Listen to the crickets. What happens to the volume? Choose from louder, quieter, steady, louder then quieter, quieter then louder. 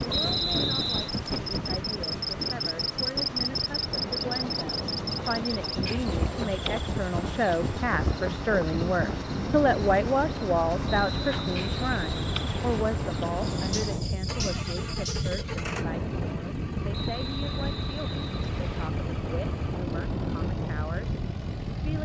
quieter.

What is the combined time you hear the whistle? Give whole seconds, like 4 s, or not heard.
5 s.